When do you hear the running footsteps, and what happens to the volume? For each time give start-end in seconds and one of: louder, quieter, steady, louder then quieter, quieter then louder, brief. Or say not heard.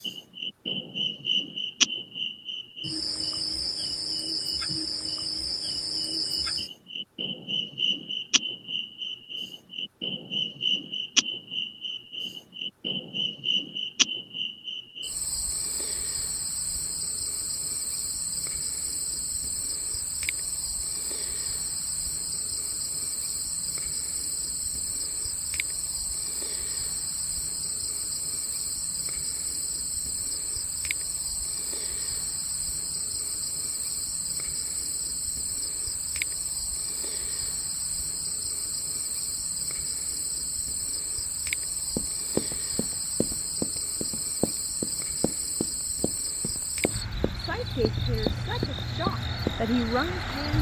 42.0-49.6 quieter then louder.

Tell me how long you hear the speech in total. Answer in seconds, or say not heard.
3 s.